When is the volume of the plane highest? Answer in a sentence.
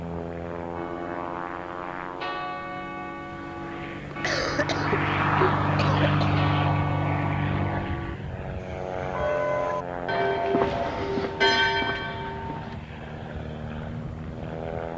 The loudest moment of the plane is at 6 seconds.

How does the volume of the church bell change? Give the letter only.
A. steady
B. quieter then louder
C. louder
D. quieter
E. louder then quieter
C.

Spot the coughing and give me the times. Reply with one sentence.
You can hear the coughing from 4.2 to 6.5 s.